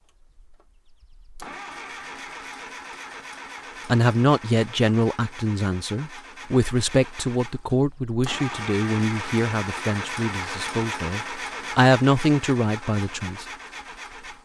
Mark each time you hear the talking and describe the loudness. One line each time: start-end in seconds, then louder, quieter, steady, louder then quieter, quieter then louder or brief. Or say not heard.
3.9-13.4 quieter then louder.